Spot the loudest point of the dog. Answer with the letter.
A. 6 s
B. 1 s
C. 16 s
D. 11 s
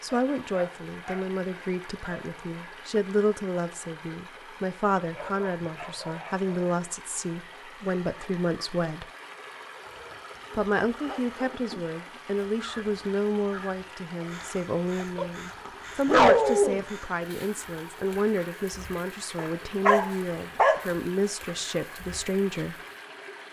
C.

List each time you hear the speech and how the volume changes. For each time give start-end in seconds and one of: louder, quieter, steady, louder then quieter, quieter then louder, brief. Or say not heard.
0.0-9.1 steady
10.5-22.8 steady.